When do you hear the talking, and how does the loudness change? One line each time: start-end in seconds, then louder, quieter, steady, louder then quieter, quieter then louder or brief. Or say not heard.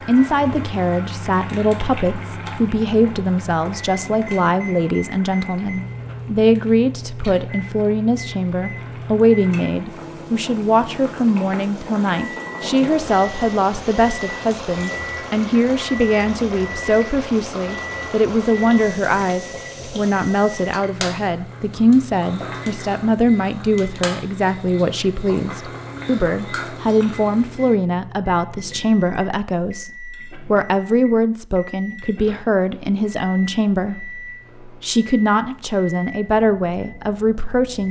0.1-37.8 steady.